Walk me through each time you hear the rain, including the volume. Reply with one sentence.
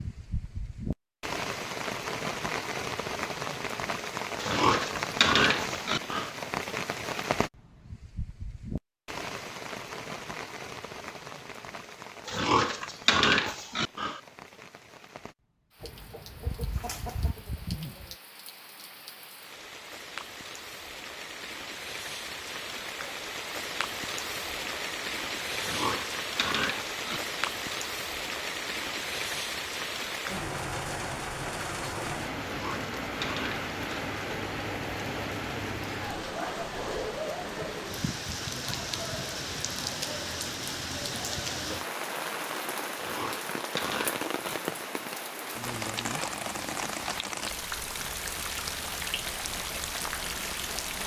The rain can be heard from 0.0 to 51.0 s, getting quieter then louder.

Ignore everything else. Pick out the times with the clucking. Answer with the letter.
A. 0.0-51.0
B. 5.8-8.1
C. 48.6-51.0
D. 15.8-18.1
D.